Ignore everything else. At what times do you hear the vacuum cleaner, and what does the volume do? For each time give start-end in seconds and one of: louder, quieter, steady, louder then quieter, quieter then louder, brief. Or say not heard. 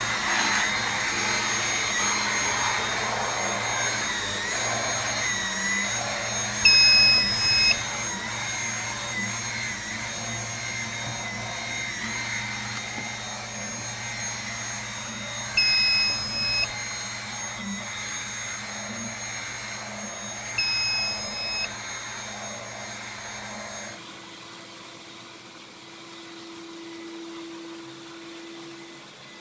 0.0-29.3 quieter.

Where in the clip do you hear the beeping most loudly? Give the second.
7 s.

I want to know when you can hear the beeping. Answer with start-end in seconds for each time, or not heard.
6.6-7.8, 15.6-16.8, 20.6-21.8.